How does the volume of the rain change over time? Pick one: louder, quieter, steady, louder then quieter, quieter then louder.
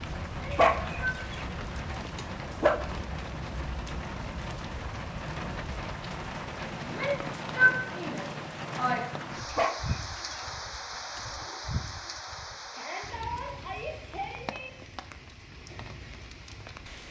quieter.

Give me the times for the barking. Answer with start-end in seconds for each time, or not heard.
0.5-2.8, 9.5-11.2.